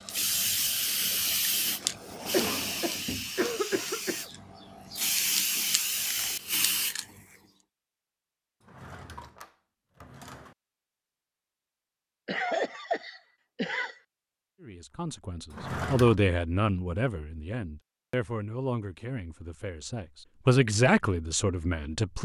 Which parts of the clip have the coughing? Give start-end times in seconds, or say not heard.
2.3-4.2, 12.2-14.0.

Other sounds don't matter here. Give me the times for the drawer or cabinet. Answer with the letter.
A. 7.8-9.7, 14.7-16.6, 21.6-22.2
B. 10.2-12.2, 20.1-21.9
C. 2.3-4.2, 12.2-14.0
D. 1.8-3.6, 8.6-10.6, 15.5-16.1
D.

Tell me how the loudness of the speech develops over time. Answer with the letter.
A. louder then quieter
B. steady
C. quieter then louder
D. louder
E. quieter
C.